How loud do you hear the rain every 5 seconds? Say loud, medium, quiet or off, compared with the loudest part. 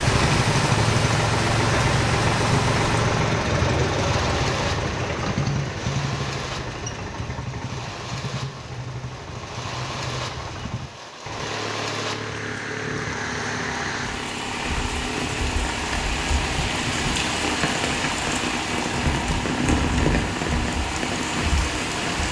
loud, medium, medium, loud, loud.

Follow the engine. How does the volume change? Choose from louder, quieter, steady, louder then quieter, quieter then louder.
quieter.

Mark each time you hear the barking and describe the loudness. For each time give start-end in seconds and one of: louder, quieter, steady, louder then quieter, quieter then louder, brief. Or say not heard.
not heard.